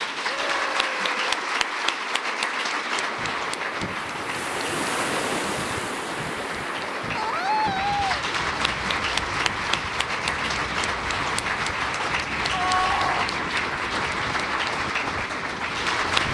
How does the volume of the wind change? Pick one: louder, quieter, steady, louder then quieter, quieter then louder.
quieter.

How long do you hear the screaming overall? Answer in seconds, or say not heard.
3 s.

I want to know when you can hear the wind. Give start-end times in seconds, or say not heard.
3.0-16.2.